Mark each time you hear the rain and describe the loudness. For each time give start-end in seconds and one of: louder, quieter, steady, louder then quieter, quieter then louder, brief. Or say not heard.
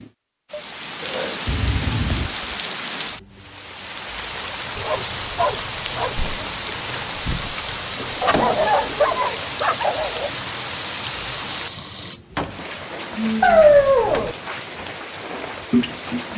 0.0-16.3 steady.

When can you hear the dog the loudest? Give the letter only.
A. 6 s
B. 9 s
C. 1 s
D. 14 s
D.